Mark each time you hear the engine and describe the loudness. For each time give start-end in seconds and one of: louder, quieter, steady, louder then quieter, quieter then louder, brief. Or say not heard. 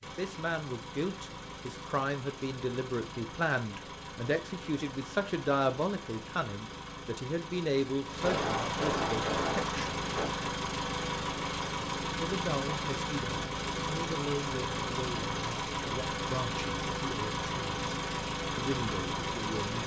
0.0-19.8 louder.